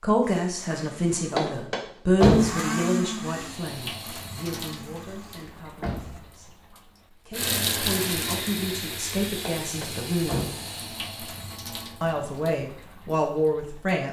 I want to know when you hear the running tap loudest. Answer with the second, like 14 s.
8 s.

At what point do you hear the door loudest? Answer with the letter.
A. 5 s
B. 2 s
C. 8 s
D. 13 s
B.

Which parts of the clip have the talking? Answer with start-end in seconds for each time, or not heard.
0.0-6.5, 7.2-10.4, 12.0-14.0.